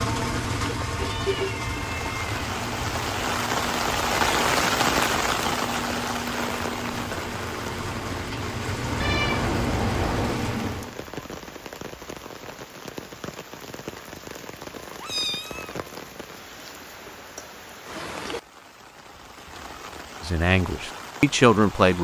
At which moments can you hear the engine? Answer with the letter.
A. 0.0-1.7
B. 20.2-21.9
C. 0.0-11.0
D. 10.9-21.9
C.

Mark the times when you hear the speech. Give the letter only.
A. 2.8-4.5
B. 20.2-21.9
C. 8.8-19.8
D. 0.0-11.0
B.